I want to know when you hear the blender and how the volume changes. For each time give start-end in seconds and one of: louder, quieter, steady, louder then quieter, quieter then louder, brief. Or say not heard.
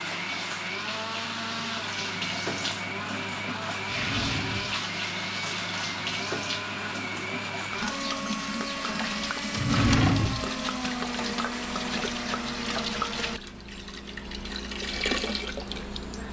0.0-13.4 steady.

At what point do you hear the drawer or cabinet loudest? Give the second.
10 s.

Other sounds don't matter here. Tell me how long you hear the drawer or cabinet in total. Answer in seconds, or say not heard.
2 s.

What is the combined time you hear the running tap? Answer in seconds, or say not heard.
16 s.